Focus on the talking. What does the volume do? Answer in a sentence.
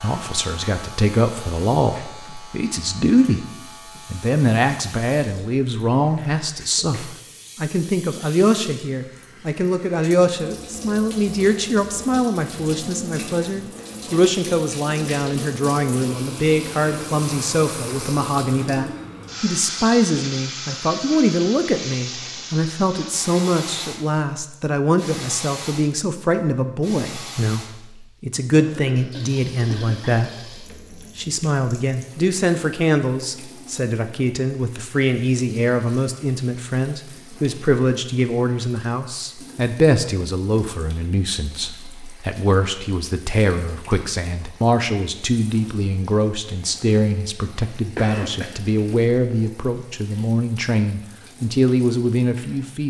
The loudness of the talking stays about the same.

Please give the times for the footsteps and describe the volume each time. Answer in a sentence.
The footsteps can't be heard in this clip.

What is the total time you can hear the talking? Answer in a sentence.
The talking can be heard for 52 seconds in total.